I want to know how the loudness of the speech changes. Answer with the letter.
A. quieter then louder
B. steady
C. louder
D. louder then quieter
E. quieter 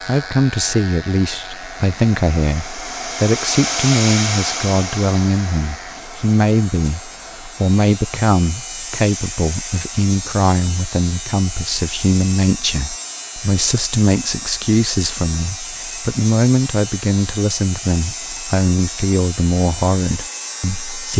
B.